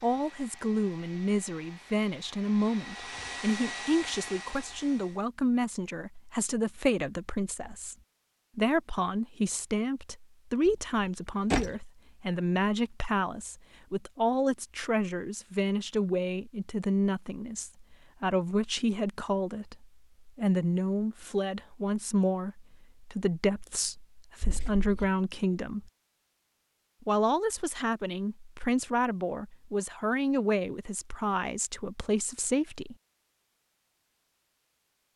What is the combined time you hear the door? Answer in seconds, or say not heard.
2 s.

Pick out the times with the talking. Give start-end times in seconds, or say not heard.
0.0-8.0, 8.6-25.9, 27.0-33.0.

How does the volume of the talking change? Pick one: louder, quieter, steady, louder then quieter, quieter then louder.
steady.